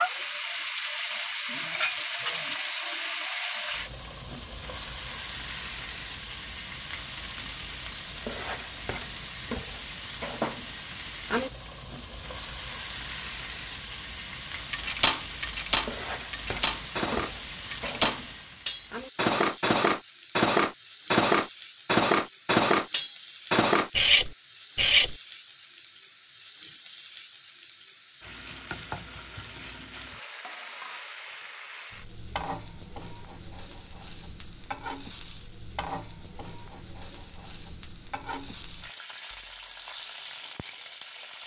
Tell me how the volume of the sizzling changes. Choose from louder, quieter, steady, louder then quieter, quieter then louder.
quieter.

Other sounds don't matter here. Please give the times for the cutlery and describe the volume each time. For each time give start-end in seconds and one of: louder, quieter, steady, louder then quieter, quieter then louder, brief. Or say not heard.
14.7-25.1 louder.